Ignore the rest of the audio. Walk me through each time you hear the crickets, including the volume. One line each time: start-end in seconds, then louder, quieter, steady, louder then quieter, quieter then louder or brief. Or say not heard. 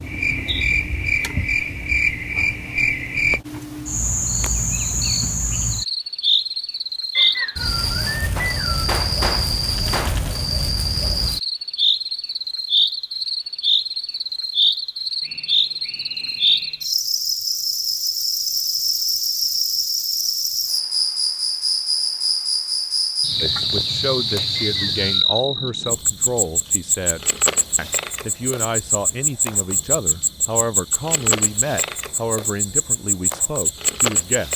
0.0-34.5 steady.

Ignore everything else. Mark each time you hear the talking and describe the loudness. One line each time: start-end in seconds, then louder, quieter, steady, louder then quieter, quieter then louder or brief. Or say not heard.
23.4-34.5 steady.